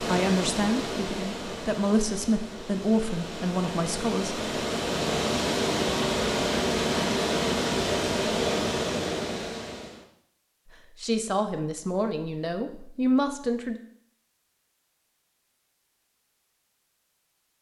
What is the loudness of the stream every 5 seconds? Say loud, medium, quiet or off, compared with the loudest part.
medium, loud, off, off.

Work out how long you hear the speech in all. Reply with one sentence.
You can hear the speech for 7 seconds altogether.